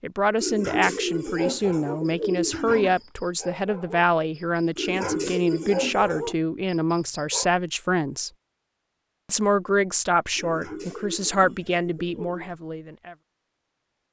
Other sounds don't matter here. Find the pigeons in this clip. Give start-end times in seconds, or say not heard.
0.3-3.0, 4.8-6.4, 10.3-12.6.